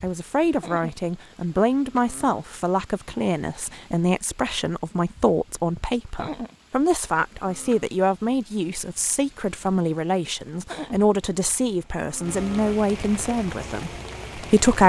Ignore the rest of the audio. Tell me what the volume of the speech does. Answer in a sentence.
The volume of the speech stays about the same.